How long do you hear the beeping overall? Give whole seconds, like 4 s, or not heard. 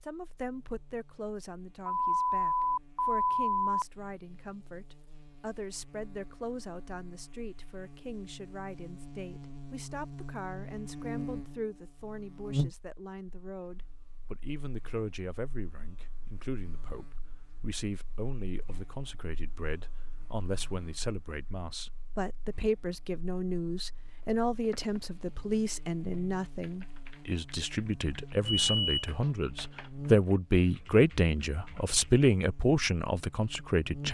3 s.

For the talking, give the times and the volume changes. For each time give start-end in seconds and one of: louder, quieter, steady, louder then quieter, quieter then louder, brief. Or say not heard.
0.0-34.0 louder.